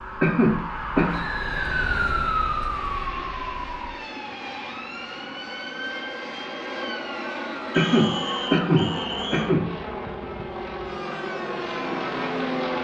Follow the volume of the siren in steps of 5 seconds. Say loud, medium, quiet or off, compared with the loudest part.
loud, medium, medium.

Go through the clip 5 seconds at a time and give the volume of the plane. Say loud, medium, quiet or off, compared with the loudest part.
medium, loud, loud.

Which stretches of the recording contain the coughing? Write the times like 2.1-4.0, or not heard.
0.2-1.1, 7.8-9.7.